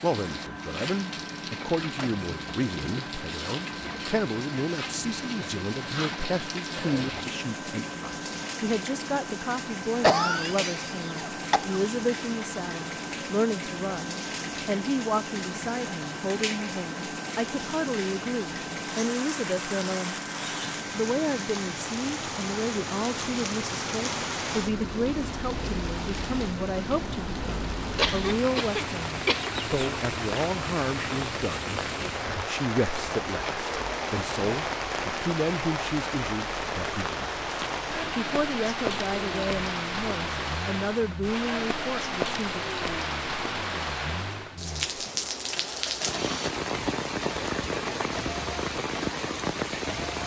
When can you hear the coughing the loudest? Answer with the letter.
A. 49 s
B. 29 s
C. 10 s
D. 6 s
C.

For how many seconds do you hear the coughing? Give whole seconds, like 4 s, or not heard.
3 s.